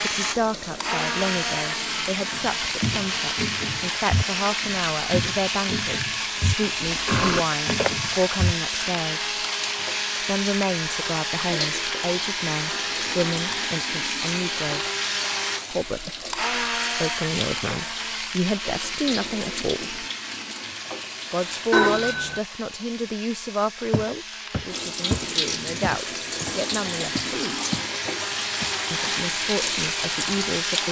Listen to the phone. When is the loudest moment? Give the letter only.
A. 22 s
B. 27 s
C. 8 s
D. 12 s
A.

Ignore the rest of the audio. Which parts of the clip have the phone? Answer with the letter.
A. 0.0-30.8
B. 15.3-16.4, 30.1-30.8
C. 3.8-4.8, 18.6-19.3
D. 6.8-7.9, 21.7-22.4
D.